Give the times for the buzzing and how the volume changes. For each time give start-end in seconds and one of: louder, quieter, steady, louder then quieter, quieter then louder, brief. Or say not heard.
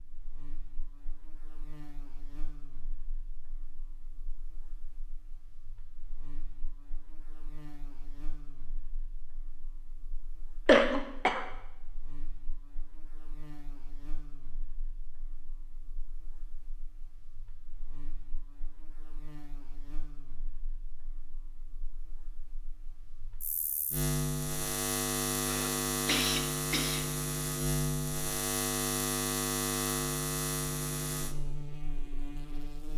0.0-32.9 louder.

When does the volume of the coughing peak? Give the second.
11 s.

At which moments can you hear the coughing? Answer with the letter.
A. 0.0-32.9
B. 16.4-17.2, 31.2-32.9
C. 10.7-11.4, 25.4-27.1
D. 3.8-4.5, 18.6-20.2
C.